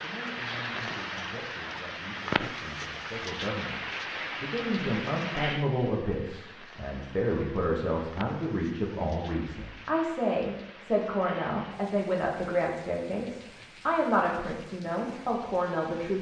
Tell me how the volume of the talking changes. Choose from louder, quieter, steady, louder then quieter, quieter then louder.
louder.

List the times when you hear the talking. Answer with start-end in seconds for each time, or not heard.
0.0-16.1.